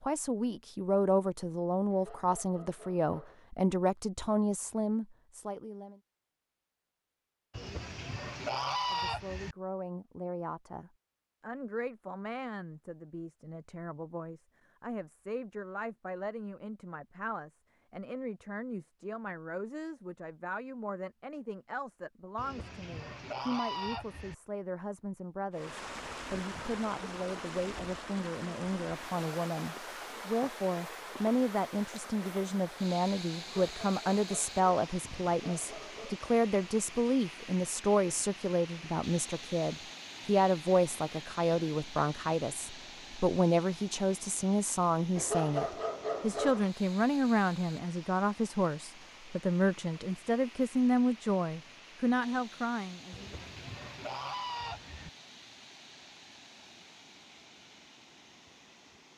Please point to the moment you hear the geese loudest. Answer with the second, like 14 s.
9 s.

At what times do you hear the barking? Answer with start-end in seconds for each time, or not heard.
1.9-3.5, 33.4-36.2, 45.1-46.7.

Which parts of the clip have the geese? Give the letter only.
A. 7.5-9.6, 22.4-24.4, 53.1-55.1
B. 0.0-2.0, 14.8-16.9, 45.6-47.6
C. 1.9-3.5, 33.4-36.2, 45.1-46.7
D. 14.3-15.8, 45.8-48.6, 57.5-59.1
A.